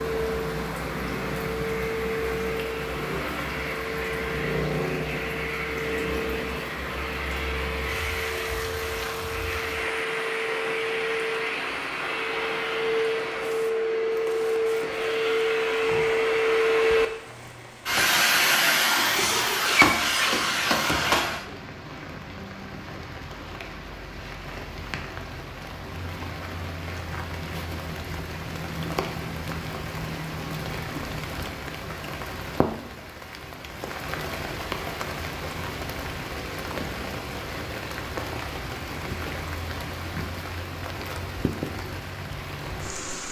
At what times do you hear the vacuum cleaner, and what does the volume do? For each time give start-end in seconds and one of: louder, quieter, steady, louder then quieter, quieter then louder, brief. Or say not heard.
0.0-21.4 louder.